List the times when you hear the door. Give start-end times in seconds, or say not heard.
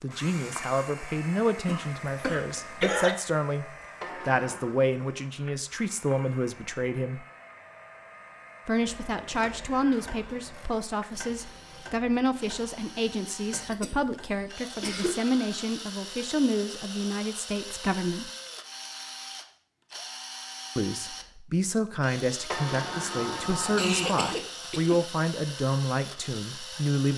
4.0-4.8, 22.5-24.4.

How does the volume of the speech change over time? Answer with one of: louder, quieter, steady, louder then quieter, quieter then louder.
steady.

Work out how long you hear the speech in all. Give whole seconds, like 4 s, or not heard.
23 s.